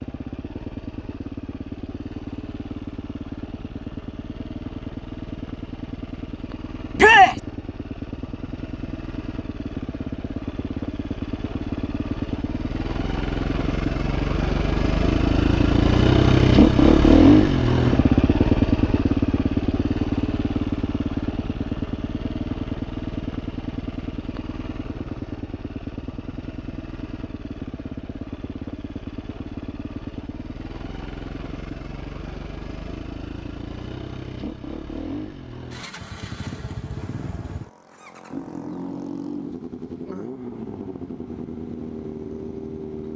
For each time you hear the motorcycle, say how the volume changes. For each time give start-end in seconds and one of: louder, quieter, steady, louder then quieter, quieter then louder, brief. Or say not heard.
0.0-43.1 louder then quieter.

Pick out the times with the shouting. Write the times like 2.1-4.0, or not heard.
7.0-7.4.